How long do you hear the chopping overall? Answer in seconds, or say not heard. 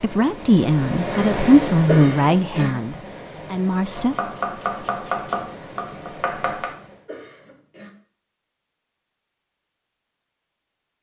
3 s.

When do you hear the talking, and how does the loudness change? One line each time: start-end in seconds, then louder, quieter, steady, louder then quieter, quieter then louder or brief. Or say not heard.
0.0-4.2 quieter.